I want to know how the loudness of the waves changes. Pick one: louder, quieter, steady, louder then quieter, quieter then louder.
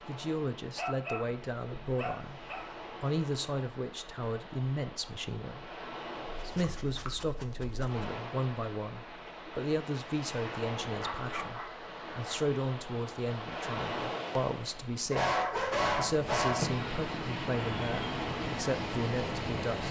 louder.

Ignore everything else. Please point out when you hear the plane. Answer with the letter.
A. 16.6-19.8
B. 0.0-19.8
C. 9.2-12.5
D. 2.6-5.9
A.